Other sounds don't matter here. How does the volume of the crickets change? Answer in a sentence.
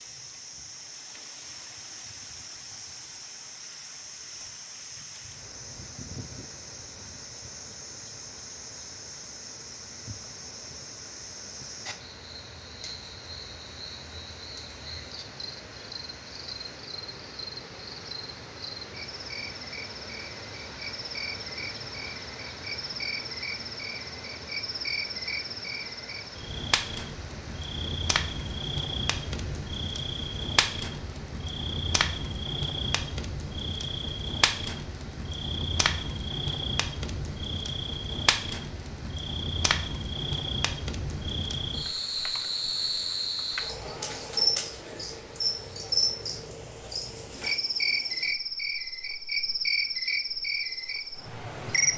The volume of the crickets goes up.